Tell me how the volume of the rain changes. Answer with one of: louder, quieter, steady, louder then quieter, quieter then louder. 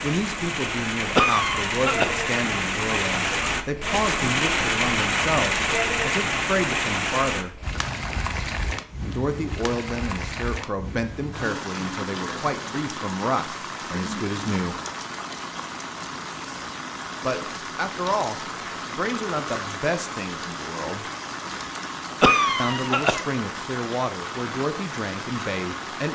quieter.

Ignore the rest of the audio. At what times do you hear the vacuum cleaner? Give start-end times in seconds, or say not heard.
not heard.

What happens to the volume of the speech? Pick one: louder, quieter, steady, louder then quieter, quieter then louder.
steady.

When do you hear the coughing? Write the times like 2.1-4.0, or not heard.
1.1-2.1, 22.2-23.2.